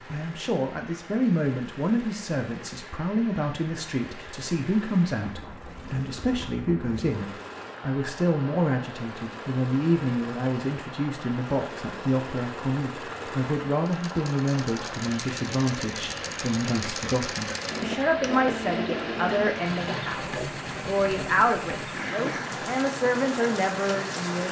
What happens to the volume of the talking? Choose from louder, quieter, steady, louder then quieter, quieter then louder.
steady.